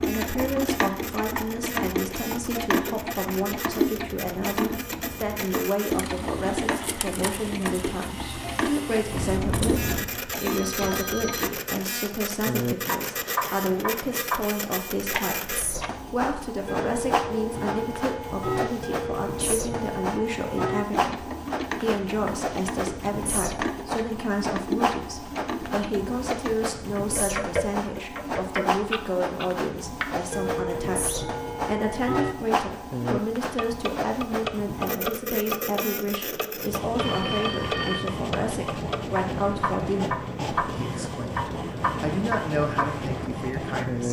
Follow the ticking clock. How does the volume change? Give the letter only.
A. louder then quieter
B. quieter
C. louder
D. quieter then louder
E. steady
E.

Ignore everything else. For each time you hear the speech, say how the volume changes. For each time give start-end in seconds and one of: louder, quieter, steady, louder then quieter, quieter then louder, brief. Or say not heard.
0.1-44.0 steady.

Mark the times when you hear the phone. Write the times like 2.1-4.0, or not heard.
9.1-11.6, 37.0-38.0.